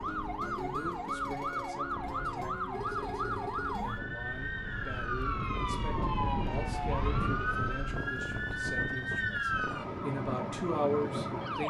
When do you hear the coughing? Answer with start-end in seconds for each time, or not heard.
not heard.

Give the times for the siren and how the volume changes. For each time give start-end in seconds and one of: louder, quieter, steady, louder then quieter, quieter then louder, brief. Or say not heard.
0.0-11.6 steady.